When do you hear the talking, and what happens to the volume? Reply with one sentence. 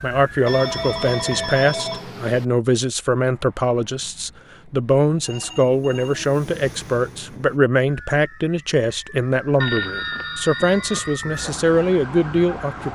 You can hear the talking from 0.0 to 12.9 s, at a steady volume.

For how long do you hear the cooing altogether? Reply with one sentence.
The cooing can't be heard in this clip.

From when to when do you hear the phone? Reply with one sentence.
The phone can be heard from 0.5 to 2.5 s, from 5.1 to 6.2 s and from 9.6 to 11.2 s.